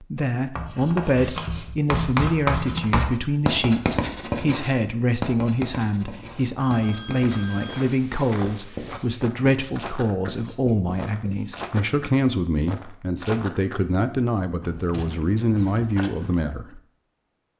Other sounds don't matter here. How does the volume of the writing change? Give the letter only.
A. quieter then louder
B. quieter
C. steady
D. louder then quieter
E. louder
B.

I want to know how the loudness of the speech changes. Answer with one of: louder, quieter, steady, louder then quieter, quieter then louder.
steady.